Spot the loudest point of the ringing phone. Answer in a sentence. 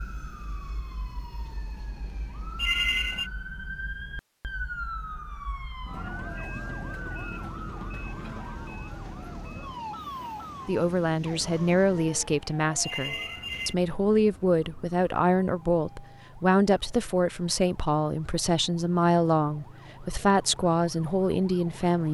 The loudest moment of the ringing phone is at 3 seconds.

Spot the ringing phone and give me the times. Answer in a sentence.
You can hear the ringing phone from 2.5 to 3.3 s and from 12.8 to 13.8 s.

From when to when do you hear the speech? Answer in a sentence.
The speech can be heard from 10.7 to 22.1 s.